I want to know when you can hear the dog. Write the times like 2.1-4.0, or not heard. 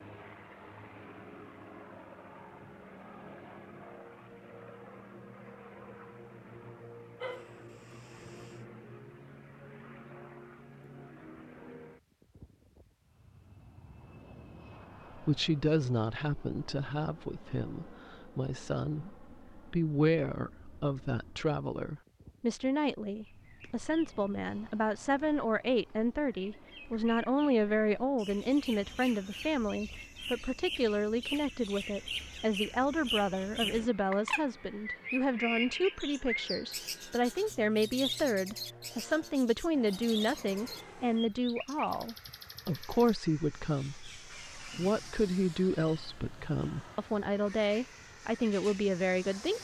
7.2-8.6.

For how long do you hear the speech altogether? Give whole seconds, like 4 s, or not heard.
34 s.